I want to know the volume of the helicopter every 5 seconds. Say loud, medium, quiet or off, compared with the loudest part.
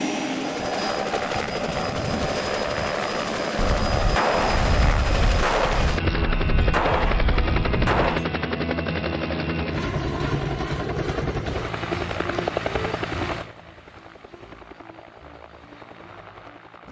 loud, loud, loud, quiet.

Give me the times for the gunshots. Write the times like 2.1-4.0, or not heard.
3.5-8.2.